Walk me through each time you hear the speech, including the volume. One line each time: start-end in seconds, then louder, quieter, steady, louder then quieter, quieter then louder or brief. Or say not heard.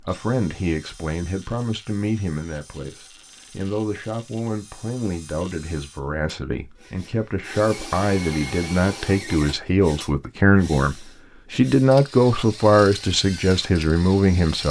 0.0-14.6 louder.